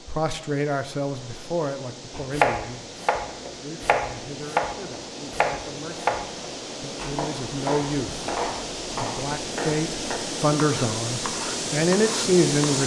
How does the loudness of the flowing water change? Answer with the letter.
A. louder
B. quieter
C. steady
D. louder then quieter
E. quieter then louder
A.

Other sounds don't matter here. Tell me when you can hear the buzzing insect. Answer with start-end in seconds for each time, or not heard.
not heard.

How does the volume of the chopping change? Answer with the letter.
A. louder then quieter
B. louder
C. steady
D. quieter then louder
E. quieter
E.